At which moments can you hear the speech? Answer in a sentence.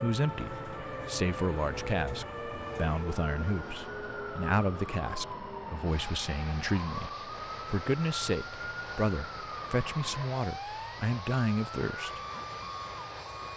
The speech can be heard from 0.0 to 12.2 s.